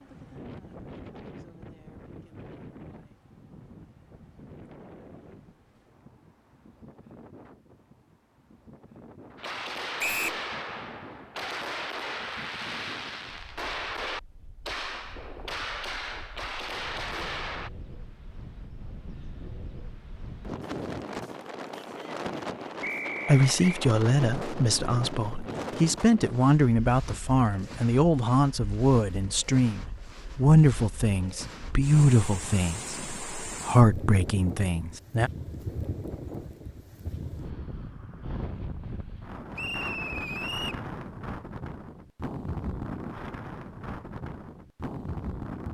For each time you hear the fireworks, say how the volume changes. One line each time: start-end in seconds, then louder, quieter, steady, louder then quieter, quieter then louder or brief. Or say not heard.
9.3-17.7 steady.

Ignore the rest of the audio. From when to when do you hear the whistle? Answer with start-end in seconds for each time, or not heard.
9.9-10.4, 22.8-23.9, 39.5-40.9.